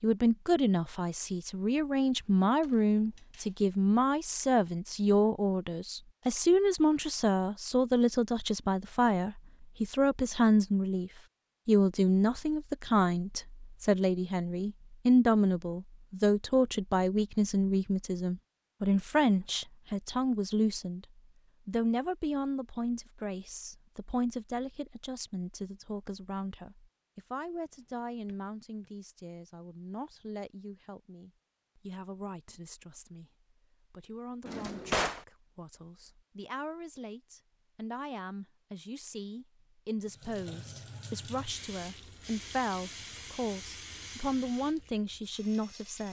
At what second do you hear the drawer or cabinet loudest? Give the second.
35 s.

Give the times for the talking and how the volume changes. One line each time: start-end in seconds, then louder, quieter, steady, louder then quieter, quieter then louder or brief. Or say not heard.
0.0-21.1 steady
21.6-46.0 quieter then louder.